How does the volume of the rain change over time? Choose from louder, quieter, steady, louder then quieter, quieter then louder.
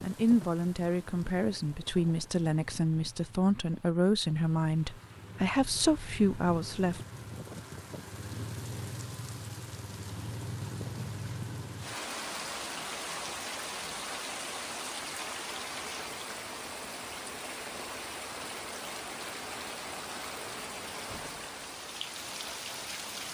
louder.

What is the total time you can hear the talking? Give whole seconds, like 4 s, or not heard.
7 s.